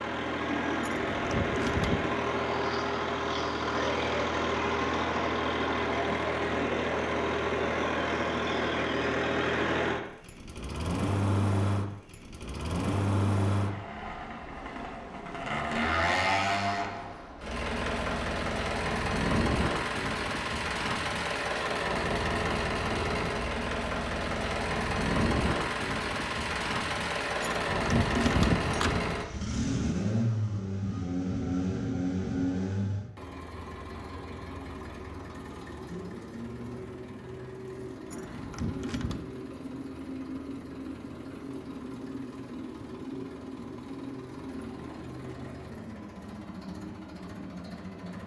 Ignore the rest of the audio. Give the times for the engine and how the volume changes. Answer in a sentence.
The engine can be heard from 0.0 to 48.2 s, getting quieter.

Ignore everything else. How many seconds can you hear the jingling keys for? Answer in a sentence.
The jingling keys can be heard for 4 seconds in total.